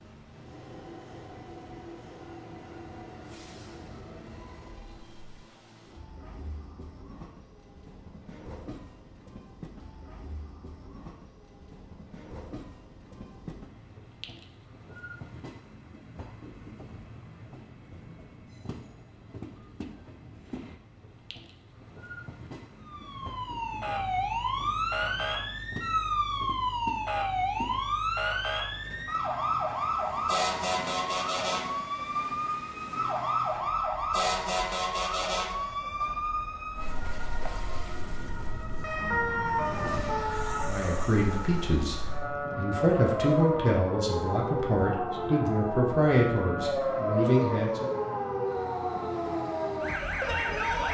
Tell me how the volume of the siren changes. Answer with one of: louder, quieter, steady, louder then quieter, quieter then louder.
steady.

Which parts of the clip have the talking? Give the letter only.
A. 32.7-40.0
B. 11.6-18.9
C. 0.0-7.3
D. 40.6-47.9
D.